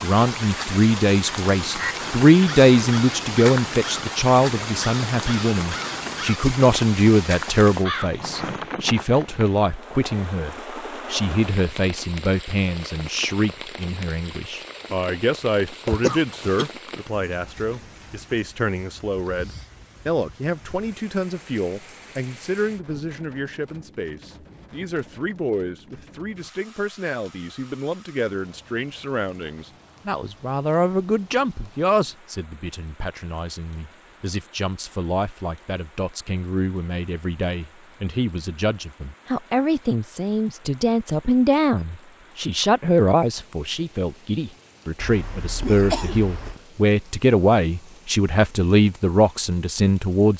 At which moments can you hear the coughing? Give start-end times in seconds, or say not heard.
15.8-16.7, 45.0-46.6.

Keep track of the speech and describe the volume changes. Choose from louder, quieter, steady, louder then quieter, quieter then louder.
quieter then louder.